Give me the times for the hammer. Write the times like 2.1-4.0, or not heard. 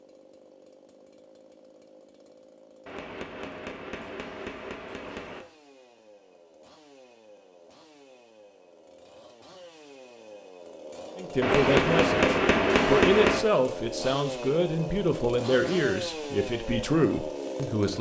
2.9-5.5, 11.4-13.4.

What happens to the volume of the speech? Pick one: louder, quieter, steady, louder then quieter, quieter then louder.
steady.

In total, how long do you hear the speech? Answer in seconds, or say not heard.
7 s.